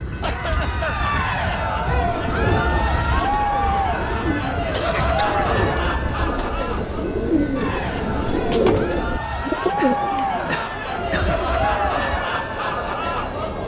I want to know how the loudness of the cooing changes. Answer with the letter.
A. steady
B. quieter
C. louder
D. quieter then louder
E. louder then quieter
E.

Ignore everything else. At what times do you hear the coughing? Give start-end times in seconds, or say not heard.
0.2-1.0, 4.7-5.8, 9.8-11.5.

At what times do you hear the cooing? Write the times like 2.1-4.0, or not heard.
1.9-12.2.